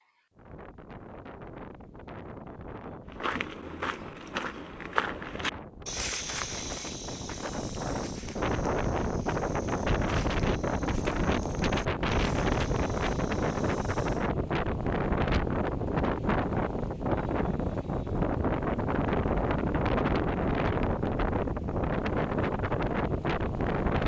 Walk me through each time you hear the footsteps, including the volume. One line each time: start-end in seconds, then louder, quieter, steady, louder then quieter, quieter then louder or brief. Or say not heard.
3.1-14.3 quieter.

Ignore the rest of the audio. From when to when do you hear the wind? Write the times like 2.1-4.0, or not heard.
0.3-24.0.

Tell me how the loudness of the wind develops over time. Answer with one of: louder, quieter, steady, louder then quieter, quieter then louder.
louder.